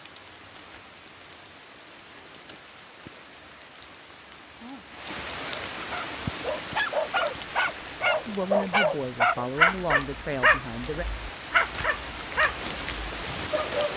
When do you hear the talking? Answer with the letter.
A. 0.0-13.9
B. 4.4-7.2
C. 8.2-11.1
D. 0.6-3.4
C.